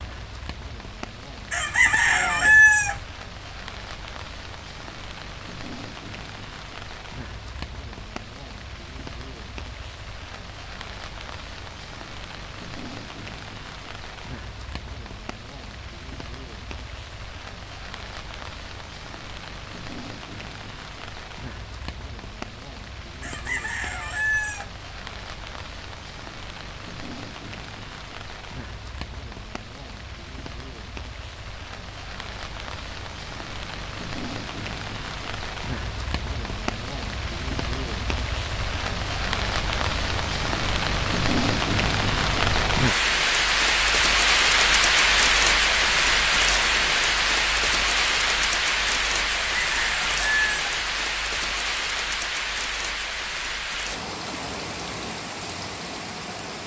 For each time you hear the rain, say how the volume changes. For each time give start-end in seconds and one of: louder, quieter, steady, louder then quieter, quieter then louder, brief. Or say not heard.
0.0-56.6 louder.